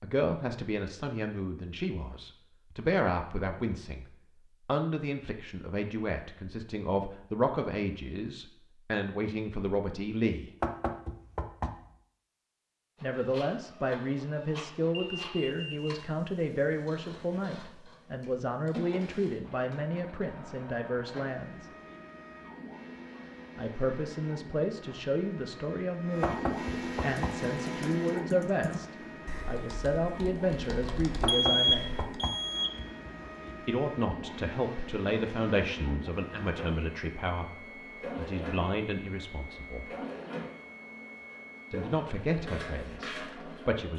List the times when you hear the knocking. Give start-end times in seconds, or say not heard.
10.6-11.9, 26.2-27.4, 31.2-33.5.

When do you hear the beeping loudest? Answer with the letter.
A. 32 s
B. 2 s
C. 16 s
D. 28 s
A.